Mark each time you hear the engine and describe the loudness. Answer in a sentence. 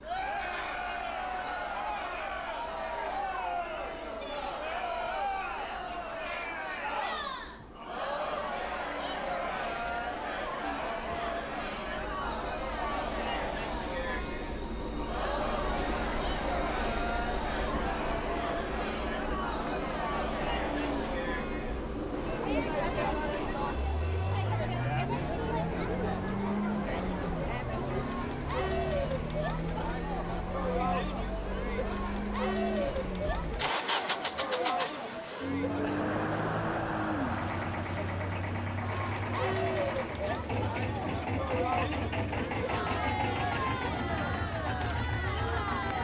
The engine can be heard from 0.0 to 46.0 s, getting louder.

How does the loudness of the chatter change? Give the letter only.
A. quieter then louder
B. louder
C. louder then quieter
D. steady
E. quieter
D.